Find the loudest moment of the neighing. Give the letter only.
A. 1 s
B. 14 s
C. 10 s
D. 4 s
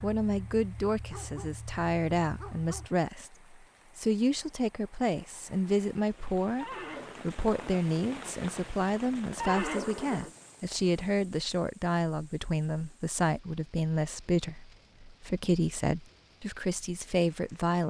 C.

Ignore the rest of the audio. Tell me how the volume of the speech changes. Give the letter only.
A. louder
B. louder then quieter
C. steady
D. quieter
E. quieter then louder
C.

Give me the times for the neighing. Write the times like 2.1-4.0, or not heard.
6.6-7.2, 9.3-11.1.